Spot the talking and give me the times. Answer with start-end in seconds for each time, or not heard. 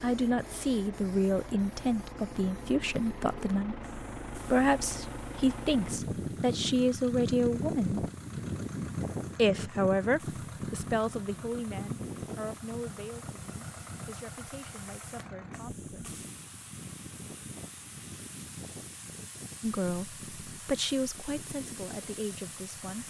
0.0-8.1, 9.3-16.1, 19.6-23.0.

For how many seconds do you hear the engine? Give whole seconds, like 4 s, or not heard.
23 s.